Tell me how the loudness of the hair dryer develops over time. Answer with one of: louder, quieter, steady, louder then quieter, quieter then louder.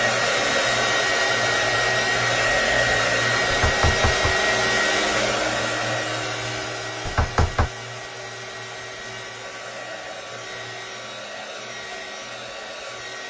quieter.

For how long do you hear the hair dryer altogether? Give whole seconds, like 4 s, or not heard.
13 s.